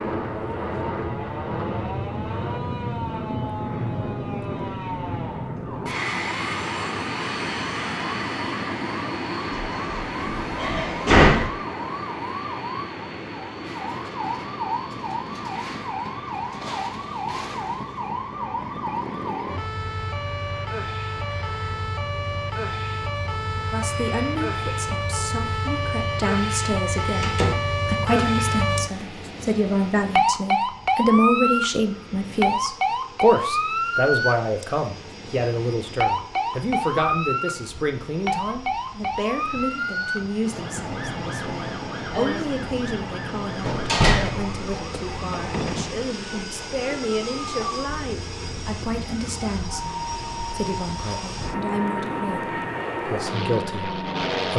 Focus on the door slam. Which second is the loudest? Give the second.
11 s.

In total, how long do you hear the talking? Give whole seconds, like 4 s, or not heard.
31 s.